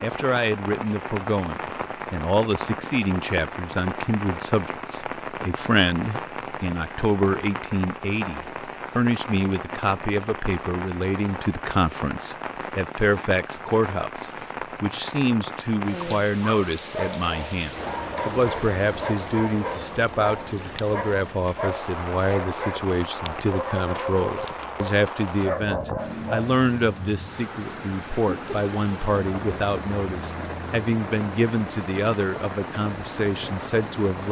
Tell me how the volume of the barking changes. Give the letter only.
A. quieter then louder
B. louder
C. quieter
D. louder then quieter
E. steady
E.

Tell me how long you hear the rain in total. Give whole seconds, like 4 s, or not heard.
34 s.